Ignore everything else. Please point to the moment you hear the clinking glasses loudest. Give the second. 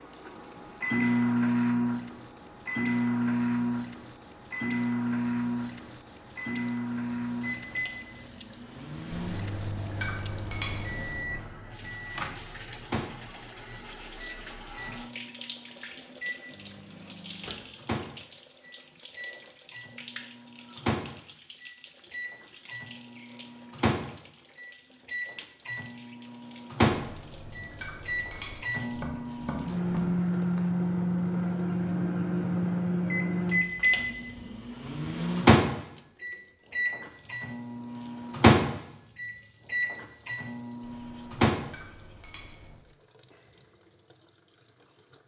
11 s.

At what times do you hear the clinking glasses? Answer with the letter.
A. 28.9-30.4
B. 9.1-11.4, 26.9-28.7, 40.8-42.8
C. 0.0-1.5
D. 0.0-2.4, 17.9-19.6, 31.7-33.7
B.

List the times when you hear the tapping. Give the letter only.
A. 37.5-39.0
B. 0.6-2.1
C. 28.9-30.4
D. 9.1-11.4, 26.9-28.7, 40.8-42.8
C.